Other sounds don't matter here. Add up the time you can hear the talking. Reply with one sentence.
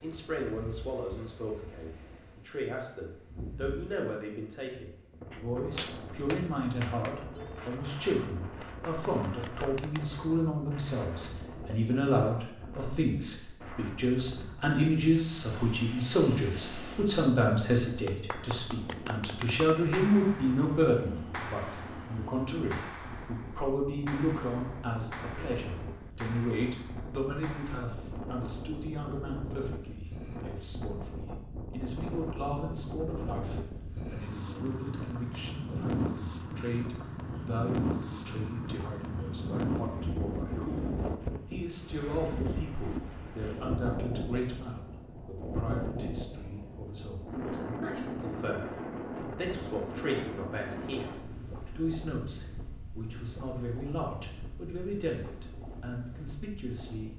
You can hear the talking for 57 seconds altogether.